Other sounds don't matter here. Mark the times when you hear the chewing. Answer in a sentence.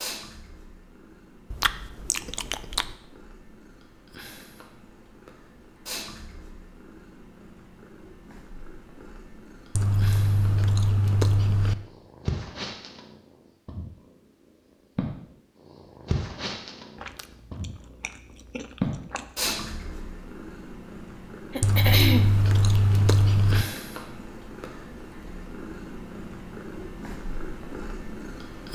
You can hear the chewing from 1.5 to 3.0 s, from 9.8 to 11.8 s, from 16.9 to 19.6 s and from 21.6 to 23.6 s.